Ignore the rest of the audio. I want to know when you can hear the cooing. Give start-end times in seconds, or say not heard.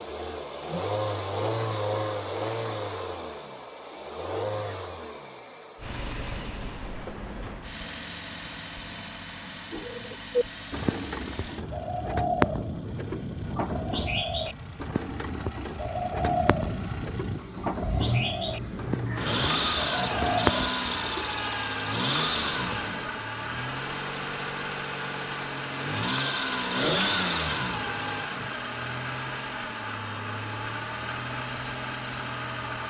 9.7-21.2.